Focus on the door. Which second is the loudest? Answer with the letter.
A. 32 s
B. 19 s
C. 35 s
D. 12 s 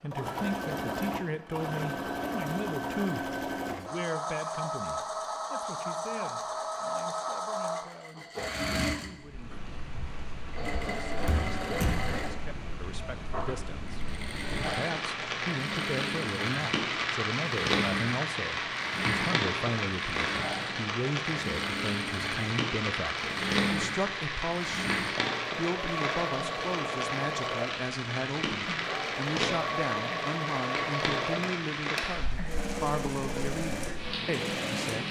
D.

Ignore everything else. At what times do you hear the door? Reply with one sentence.
The door can be heard from 11.2 to 12.1 s and from 31.4 to 32.0 s.